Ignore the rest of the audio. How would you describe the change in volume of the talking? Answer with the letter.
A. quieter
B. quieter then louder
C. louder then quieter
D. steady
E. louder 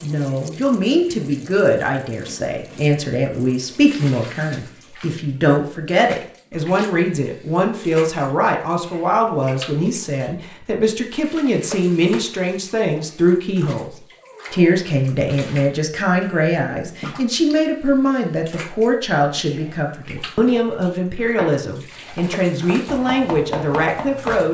D.